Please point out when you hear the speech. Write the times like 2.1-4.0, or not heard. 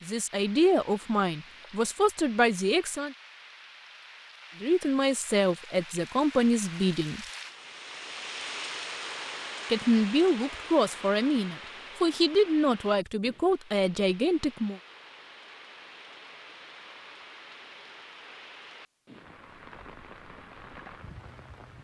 0.0-3.1, 4.6-7.2, 9.7-14.8.